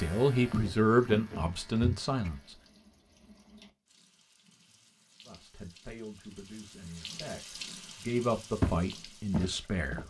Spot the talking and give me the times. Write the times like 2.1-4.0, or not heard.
0.0-2.4, 5.2-10.0.